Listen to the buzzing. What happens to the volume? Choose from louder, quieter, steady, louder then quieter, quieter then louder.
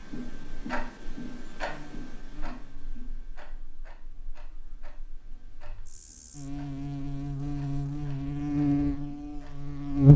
quieter then louder.